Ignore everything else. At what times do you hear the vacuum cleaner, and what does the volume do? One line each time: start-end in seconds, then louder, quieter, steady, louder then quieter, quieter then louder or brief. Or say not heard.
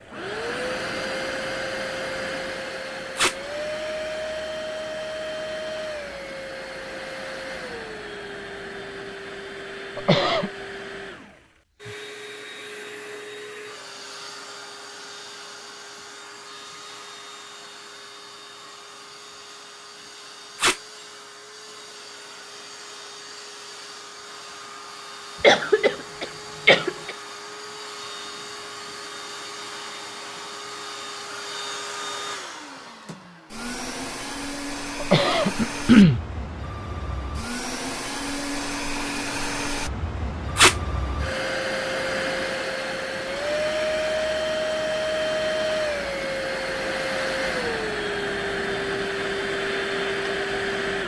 0.0-51.0 quieter then louder.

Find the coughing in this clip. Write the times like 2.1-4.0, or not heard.
9.9-10.5, 25.4-27.1, 35.0-36.2.